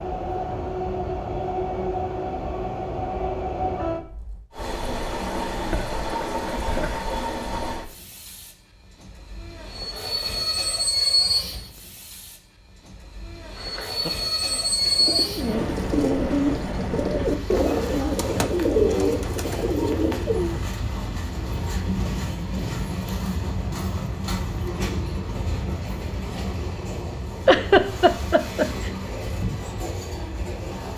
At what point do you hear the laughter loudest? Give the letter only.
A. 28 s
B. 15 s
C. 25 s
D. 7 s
A.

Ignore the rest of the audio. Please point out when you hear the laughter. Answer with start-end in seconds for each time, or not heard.
5.5-7.0, 13.6-14.2, 27.4-28.9.